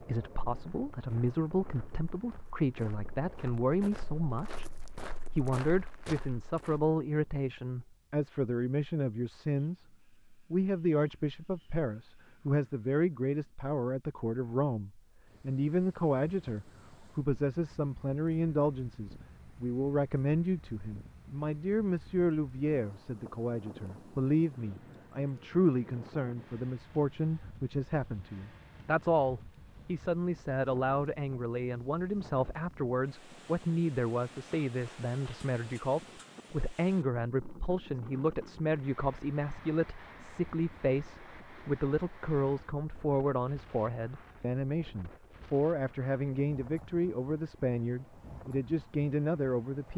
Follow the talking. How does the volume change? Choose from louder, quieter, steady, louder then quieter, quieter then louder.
steady.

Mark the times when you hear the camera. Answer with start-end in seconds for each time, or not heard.
not heard.